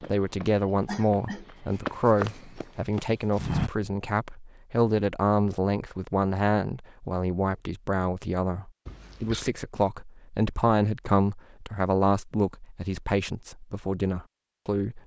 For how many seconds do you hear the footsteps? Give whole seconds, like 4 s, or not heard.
4 s.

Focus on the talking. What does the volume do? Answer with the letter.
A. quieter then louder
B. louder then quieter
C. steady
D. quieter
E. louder
C.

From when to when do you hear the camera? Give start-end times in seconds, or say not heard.
not heard.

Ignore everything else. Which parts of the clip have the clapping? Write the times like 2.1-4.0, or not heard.
not heard.